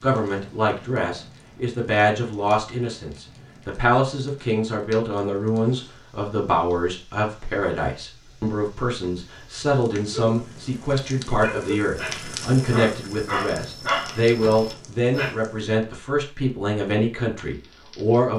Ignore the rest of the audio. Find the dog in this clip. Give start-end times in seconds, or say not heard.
10.1-15.3.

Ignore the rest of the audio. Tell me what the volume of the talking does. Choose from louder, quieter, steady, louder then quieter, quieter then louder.
steady.